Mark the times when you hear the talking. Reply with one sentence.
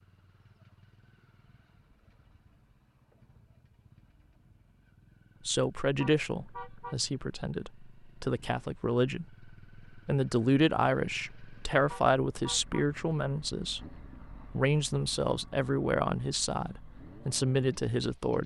The talking can be heard from 5.5 to 18.4 s.